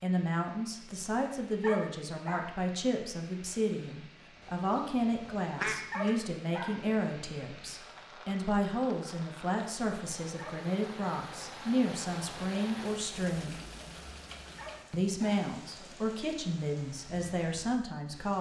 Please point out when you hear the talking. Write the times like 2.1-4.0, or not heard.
0.0-13.6, 14.9-18.3.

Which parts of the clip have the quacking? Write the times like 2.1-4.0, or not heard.
4.4-6.2.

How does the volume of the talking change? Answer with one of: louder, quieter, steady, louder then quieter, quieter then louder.
steady.